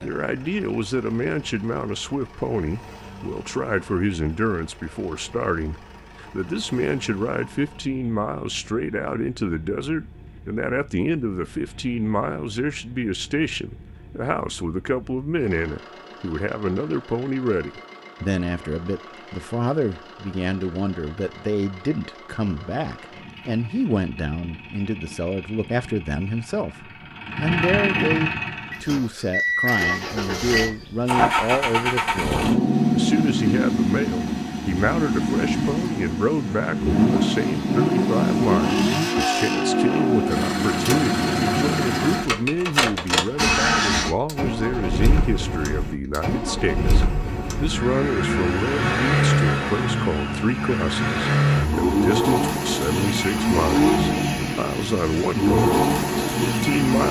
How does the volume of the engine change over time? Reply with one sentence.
The volume of the engine goes up.